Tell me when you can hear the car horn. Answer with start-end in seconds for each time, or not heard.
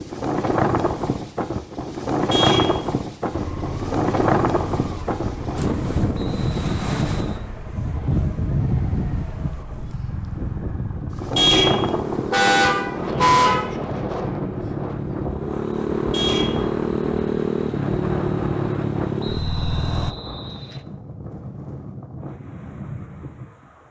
2.3-3.0, 11.3-13.7, 16.1-16.7.